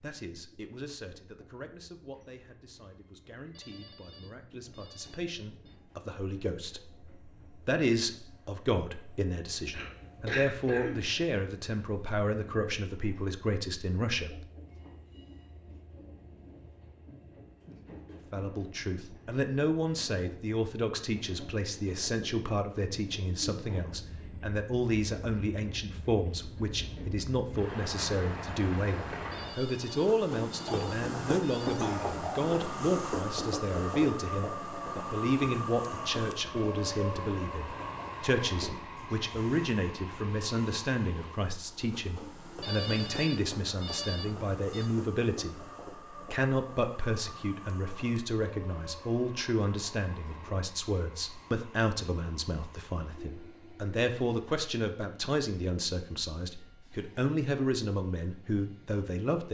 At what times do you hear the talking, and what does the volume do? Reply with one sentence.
You can hear the talking from 0.0 to 14.3 s, getting louder; from 18.1 to 45.5 s, at a steady volume; and from 46.3 to 59.4 s, at a steady volume.